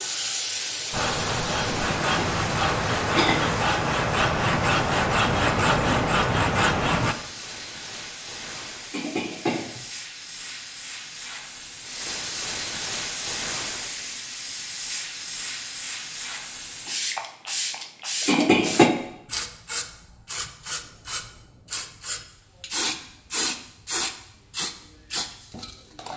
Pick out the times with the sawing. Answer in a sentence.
The sawing can be heard from 0.9 to 7.2 s.